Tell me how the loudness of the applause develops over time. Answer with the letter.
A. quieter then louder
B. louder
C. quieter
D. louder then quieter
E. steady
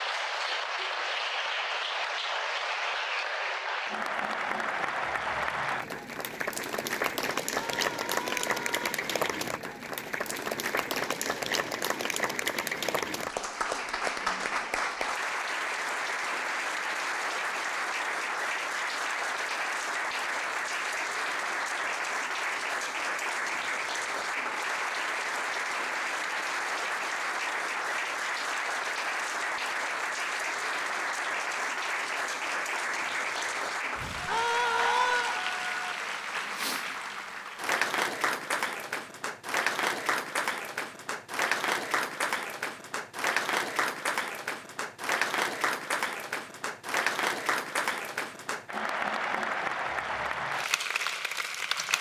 E.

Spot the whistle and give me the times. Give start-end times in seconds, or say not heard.
not heard.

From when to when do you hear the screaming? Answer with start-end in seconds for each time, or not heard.
7.5-8.9, 34.2-35.4.